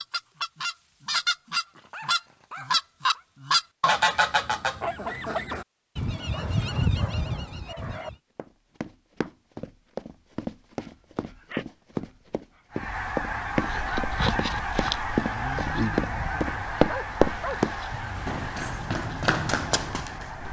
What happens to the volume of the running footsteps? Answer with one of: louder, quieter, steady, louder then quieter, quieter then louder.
louder then quieter.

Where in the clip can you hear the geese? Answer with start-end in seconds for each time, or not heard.
0.0-8.2, 12.7-20.4.